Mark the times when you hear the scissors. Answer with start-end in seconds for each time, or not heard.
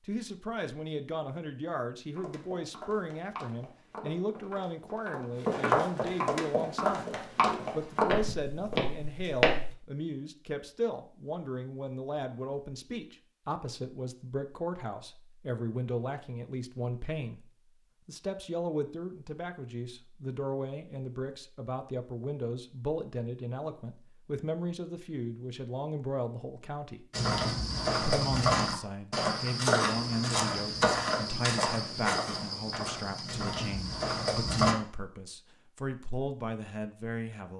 not heard.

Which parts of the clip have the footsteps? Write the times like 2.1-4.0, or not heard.
2.1-9.8, 27.1-34.8.